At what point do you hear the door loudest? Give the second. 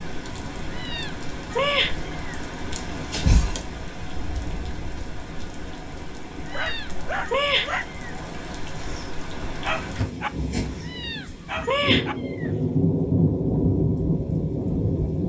3 s.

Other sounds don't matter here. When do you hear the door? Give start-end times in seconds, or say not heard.
2.8-3.6, 9.4-10.1.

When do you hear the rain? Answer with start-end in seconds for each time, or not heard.
0.0-15.2.